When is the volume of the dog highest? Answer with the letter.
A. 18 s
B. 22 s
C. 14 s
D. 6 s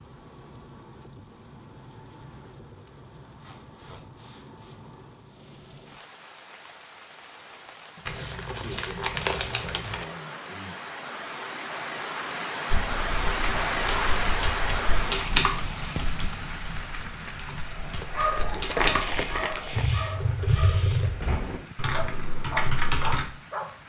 A.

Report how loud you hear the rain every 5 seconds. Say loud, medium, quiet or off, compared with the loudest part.
quiet, quiet, loud, medium, quiet.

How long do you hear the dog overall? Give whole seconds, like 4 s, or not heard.
6 s.